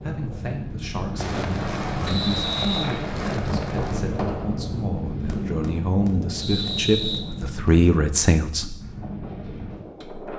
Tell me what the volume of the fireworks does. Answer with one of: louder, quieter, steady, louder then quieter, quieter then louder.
quieter.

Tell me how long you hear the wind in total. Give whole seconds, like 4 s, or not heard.
10 s.